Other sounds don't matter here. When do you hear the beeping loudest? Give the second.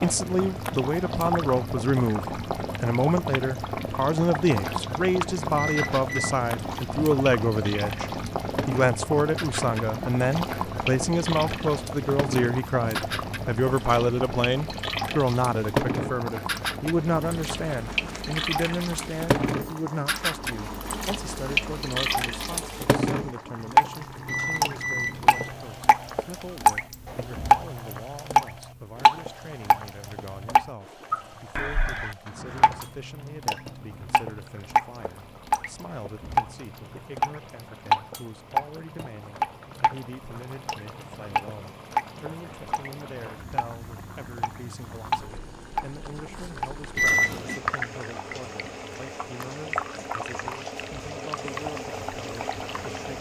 47 s.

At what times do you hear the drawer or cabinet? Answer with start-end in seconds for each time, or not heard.
32.2-32.9.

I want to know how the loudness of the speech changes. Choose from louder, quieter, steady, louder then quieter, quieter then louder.
quieter.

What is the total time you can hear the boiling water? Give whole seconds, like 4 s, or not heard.
53 s.